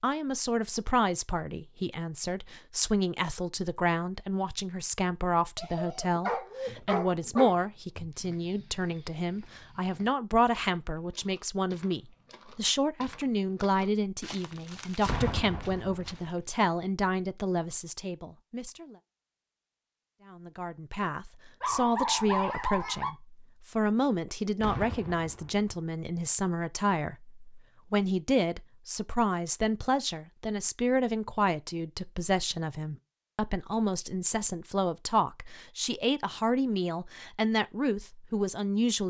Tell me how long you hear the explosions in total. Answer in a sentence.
The explosions can be heard for 2 seconds in total.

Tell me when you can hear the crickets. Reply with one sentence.
The crickets can't be heard in this clip.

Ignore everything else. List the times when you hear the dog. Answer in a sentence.
You can hear the dog from 5.5 to 7.5 s and from 21.6 to 23.1 s.